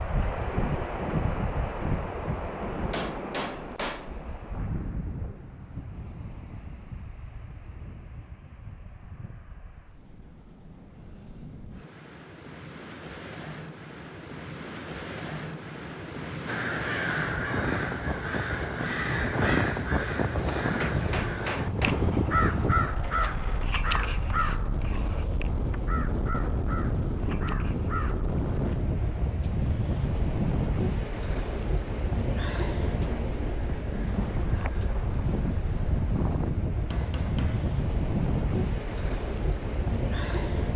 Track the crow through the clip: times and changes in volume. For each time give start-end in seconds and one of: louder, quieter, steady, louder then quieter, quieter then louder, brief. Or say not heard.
16.4-28.4 quieter.